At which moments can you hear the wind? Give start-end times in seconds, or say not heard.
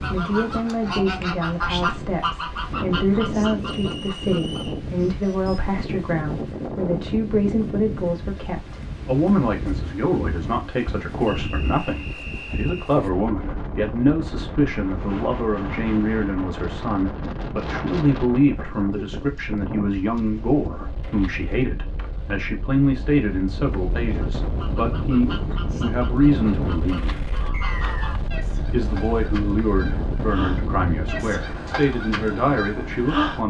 0.0-33.4.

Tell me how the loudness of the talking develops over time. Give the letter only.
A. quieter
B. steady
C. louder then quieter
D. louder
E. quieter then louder
B.